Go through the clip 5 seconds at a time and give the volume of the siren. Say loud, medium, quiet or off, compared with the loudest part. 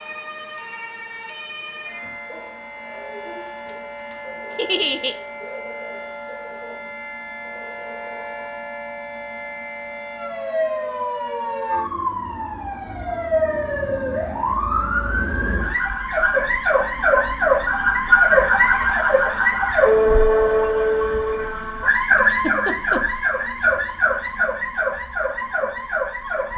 quiet, quiet, medium, loud, loud, medium.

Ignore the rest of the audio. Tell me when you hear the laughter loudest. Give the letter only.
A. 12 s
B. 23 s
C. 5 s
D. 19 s
C.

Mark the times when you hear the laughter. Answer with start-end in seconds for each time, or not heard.
4.5-5.2, 22.1-23.0.